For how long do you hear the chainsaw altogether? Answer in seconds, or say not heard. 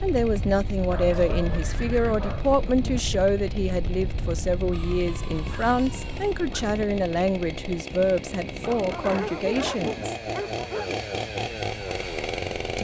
13 s.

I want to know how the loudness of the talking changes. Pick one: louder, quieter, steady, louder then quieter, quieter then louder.
steady.